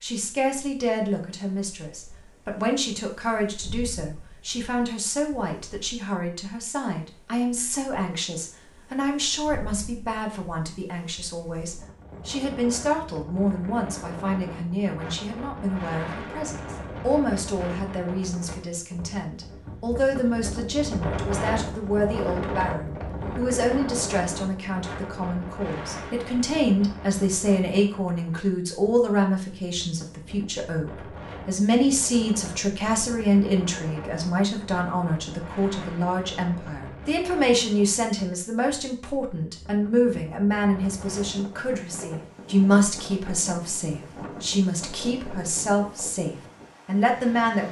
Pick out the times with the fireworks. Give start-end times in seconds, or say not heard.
not heard.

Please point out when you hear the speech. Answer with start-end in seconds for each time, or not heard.
0.0-47.6.